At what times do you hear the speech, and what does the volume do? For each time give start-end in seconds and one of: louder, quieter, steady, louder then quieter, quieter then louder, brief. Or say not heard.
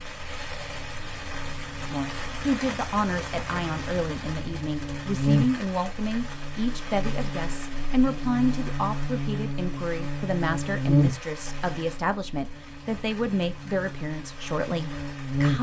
1.8-15.5 steady.